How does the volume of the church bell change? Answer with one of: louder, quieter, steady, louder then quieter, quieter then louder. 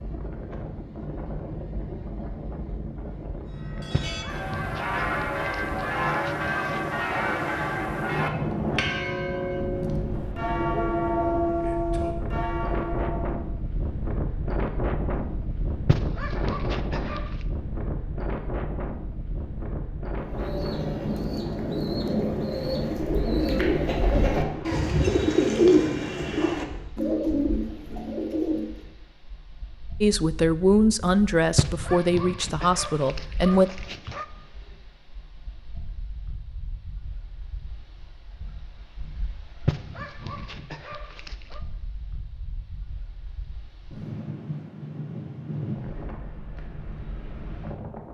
steady.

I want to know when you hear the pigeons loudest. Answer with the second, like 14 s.
26 s.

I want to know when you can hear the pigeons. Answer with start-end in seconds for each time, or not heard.
20.1-28.8.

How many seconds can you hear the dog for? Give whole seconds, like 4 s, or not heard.
9 s.